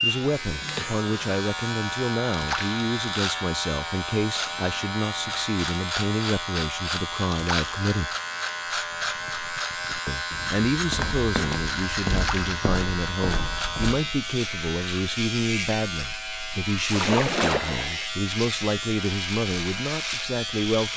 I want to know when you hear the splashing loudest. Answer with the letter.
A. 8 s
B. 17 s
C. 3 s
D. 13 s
B.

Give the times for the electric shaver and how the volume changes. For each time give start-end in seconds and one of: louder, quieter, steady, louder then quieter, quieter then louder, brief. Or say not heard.
0.0-20.9 steady.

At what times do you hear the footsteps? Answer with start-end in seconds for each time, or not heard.
8.8-14.2.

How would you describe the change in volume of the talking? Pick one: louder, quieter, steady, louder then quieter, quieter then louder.
steady.